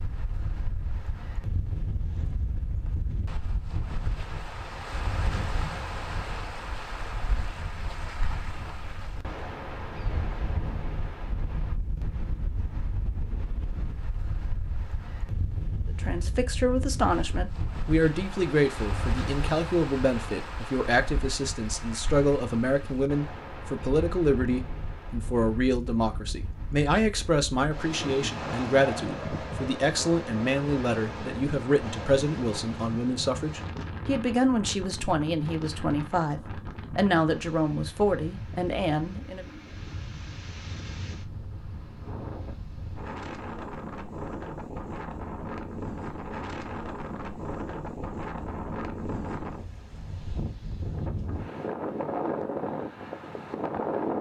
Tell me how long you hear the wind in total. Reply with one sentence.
You can hear the wind for 54 seconds altogether.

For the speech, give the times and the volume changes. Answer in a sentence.
You can hear the speech from 16.0 to 39.5 s, at a steady volume.